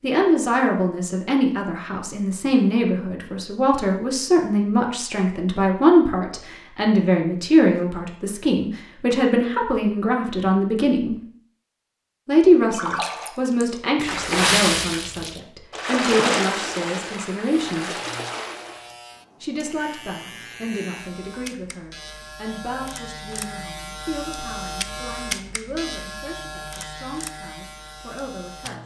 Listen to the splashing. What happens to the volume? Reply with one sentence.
The loudness of the splashing goes up, then down.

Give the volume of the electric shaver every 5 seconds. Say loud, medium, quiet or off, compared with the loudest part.
off, off, off, medium, loud, loud.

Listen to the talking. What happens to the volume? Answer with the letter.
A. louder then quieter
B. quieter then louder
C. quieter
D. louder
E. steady
C.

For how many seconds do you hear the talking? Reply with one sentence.
The talking can be heard for 26 seconds in total.